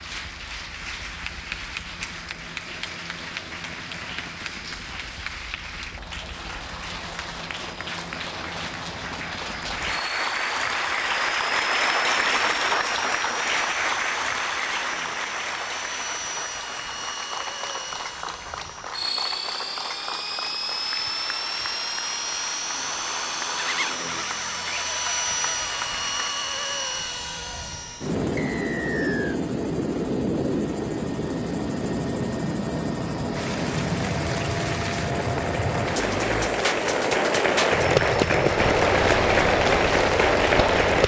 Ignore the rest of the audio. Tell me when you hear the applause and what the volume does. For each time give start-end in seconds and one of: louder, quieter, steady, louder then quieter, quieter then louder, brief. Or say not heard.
0.0-26.3 louder then quieter
33.3-41.0 louder.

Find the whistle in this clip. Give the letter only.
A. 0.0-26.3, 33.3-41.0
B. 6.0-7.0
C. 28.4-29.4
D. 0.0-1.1
C.